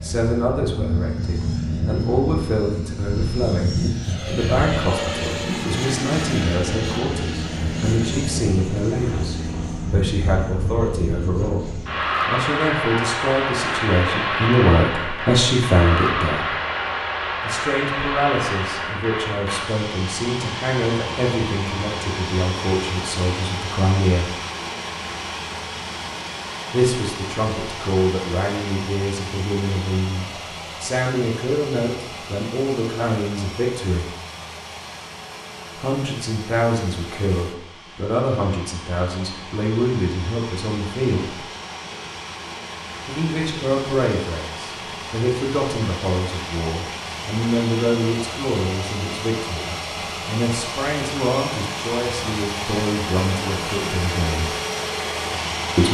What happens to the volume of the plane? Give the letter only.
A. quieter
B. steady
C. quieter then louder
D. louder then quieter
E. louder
C.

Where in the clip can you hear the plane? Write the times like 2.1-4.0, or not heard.
0.0-55.8.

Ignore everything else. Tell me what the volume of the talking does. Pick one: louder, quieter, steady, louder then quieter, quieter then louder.
steady.